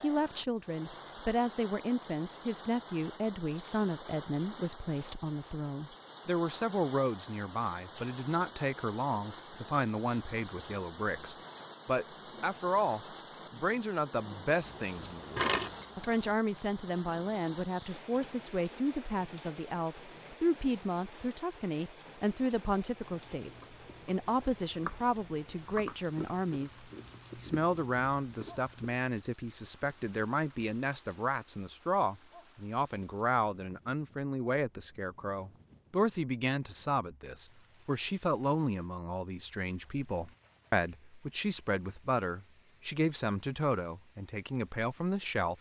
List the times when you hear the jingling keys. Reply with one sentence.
You can hear the jingling keys from 14.6 to 16.2 s.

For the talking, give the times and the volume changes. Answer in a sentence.
You can hear the talking from 0.0 to 45.5 s, at a steady volume.